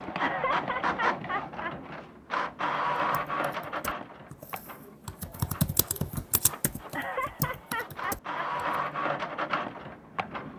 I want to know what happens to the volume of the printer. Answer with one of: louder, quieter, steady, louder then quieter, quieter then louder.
quieter then louder.